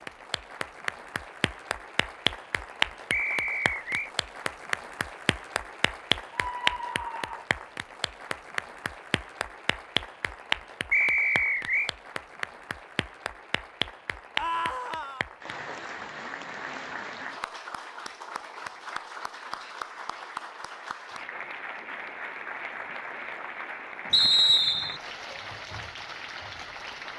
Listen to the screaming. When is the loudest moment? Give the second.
15 s.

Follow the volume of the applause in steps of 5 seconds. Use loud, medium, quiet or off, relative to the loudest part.
loud, loud, loud, medium, medium, medium.